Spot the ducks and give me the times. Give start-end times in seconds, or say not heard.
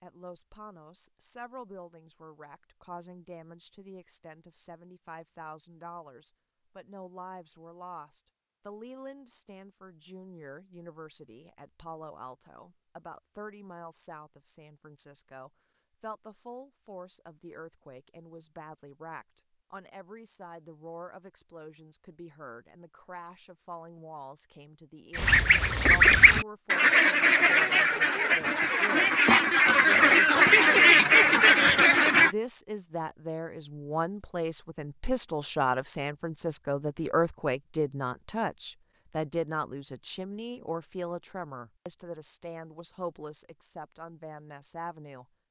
25.1-32.4.